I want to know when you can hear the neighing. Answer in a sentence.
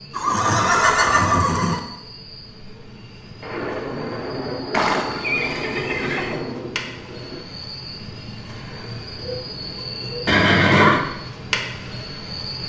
The neighing can be heard from 0.1 to 1.8 s, from 4.7 to 6.5 s and from 10.2 to 11.1 s.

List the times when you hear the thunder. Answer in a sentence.
The thunder can be heard from 3.4 to 7.5 s.